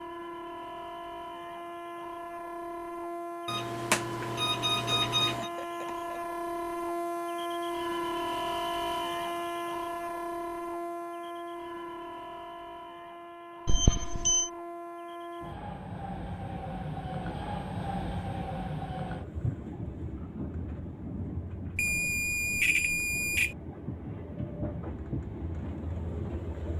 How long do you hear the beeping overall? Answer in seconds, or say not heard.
5 s.